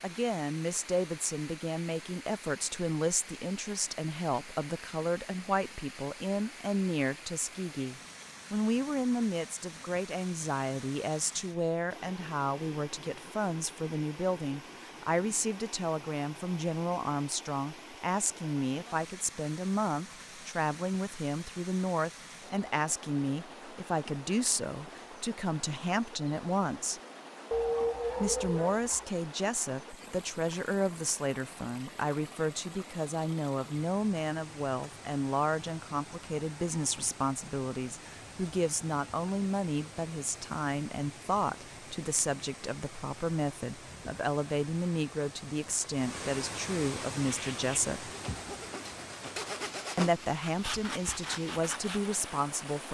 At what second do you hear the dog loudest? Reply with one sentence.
The loudest moment of the dog is at 28 seconds.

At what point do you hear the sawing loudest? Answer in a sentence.
The loudest moment of the sawing is at 50 seconds.